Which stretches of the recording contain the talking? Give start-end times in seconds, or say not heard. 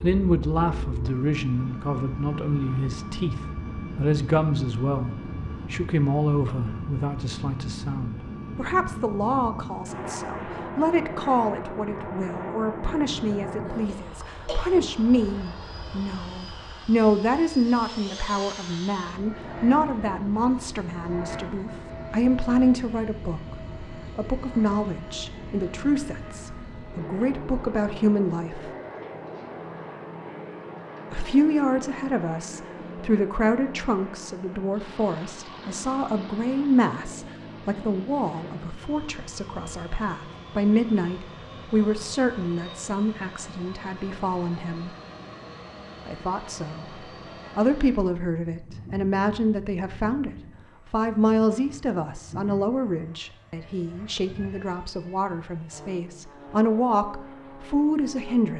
0.0-3.4, 4.0-28.7, 31.1-44.9, 46.0-46.9, 47.5-50.3, 50.9-58.5.